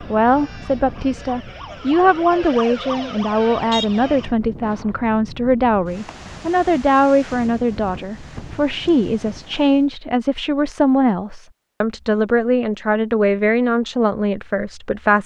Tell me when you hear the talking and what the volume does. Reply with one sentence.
You can hear the talking from 0.0 to 15.2 s, at a steady volume.